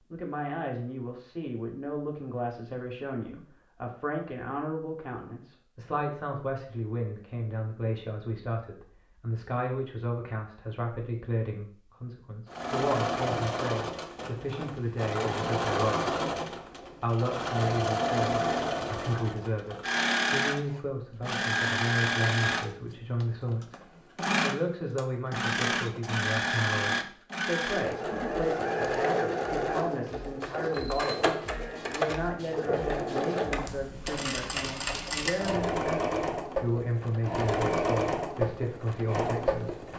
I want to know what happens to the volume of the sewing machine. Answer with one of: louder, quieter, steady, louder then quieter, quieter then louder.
steady.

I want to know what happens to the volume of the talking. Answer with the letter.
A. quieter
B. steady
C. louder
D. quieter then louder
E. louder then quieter
B.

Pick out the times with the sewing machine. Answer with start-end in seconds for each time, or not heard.
12.5-39.9.